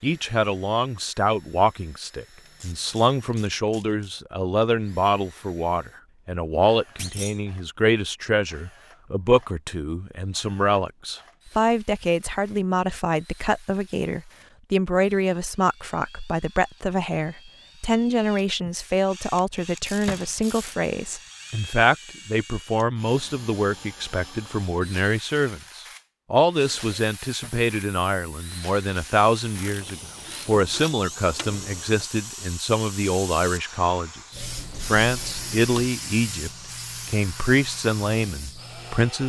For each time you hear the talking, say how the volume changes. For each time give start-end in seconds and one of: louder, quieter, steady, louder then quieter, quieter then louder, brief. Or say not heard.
0.0-39.2 steady.